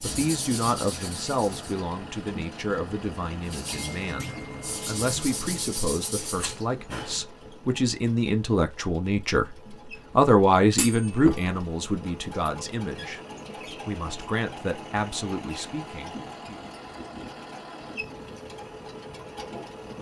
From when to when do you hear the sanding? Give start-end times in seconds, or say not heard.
0.0-1.8, 3.5-7.2.